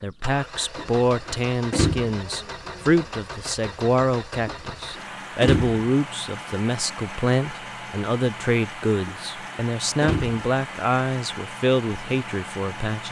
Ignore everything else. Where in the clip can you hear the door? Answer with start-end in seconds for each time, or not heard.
0.8-2.1, 4.5-5.8, 9.1-10.4.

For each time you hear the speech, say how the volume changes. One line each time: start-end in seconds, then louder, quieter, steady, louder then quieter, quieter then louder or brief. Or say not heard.
0.0-13.0 steady.